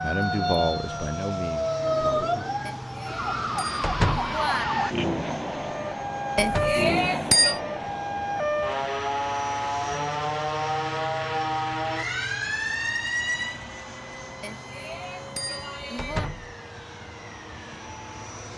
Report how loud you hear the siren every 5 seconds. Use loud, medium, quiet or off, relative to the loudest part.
loud, loud, loud, quiet.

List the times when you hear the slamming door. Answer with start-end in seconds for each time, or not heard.
3.8-4.3, 6.3-6.8, 15.9-16.6.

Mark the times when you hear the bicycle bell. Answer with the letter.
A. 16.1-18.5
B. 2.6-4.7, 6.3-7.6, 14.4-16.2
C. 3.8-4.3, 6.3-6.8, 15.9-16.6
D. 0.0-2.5
B.